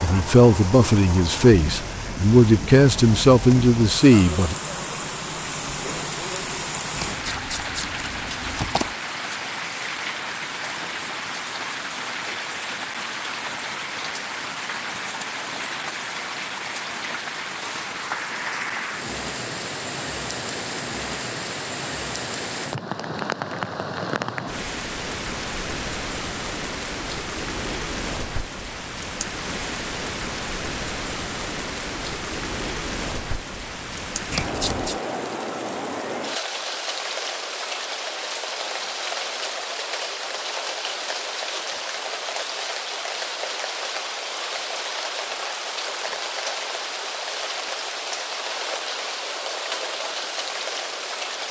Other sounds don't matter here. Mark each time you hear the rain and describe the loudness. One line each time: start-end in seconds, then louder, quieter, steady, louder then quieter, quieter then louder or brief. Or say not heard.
0.0-51.4 steady.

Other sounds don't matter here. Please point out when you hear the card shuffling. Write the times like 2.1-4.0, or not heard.
7.0-8.9, 34.3-35.0.